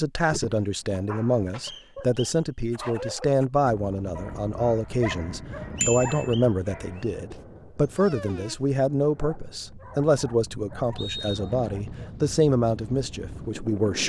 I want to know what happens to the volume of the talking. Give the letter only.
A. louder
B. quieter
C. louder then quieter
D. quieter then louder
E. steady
E.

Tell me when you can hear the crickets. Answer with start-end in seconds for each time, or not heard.
not heard.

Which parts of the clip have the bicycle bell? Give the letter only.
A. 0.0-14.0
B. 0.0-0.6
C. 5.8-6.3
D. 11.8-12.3
C.